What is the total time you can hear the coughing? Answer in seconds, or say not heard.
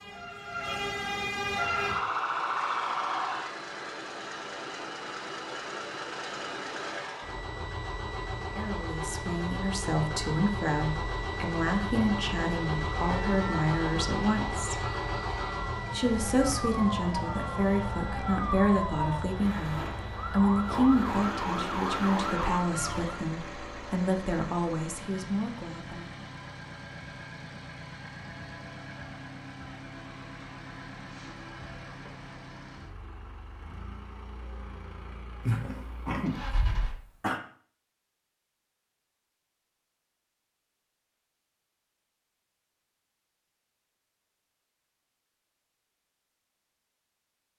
2 s.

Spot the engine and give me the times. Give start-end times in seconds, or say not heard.
1.5-37.0.